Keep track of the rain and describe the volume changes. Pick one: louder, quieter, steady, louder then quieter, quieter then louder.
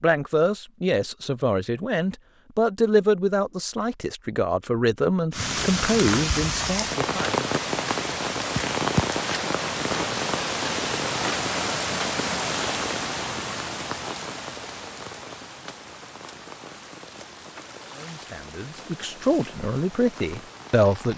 quieter.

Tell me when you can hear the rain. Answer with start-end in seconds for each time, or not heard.
5.3-21.1.